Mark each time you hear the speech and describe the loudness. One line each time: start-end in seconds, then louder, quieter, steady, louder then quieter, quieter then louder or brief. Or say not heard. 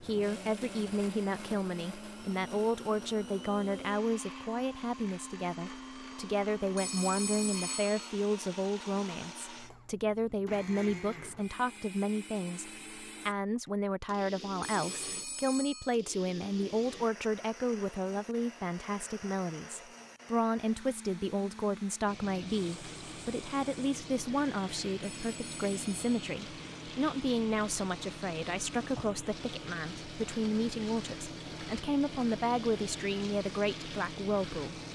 0.0-34.8 steady.